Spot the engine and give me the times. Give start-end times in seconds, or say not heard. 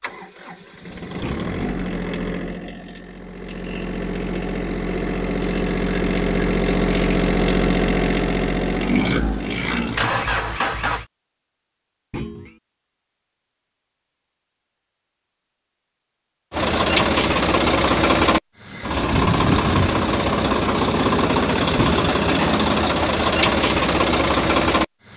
0.0-11.1, 16.5-25.1.